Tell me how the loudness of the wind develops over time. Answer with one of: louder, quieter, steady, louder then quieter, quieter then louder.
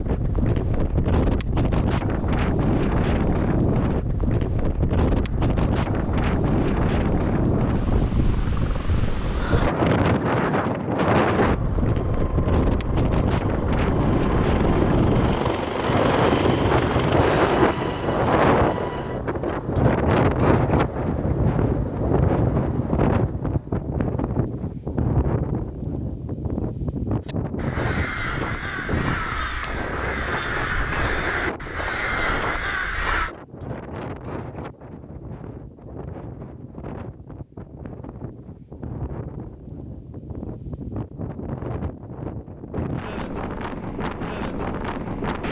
quieter.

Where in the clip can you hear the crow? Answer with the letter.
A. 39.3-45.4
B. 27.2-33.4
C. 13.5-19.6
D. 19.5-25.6
B.